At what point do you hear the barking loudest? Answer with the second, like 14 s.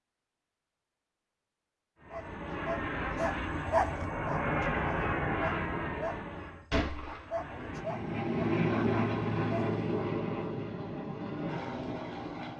4 s.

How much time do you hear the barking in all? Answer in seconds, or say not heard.
8 s.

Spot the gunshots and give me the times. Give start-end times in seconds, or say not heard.
6.7-7.3.